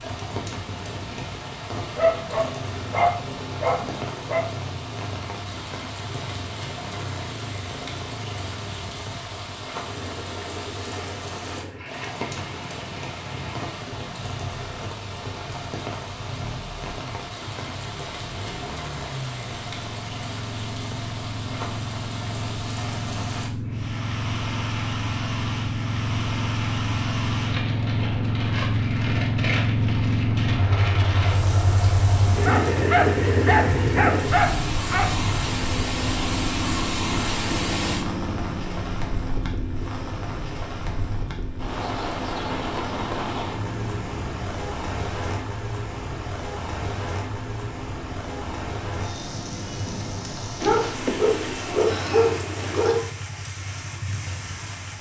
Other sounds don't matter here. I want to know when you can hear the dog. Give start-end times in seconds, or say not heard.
1.9-4.5, 32.5-35.1, 50.6-53.1.